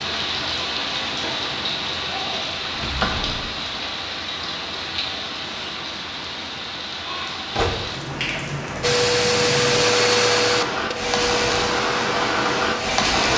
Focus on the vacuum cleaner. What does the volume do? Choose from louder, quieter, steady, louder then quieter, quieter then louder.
quieter.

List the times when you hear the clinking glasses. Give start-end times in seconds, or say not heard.
not heard.